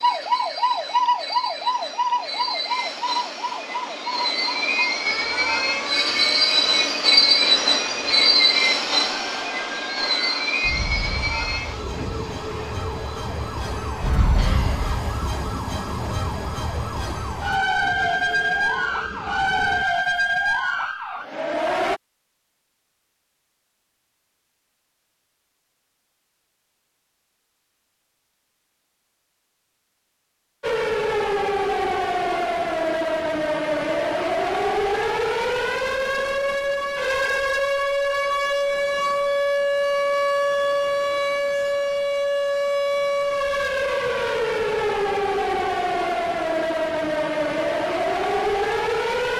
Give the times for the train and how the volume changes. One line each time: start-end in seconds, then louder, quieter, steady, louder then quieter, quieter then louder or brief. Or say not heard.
0.0-19.9 louder then quieter.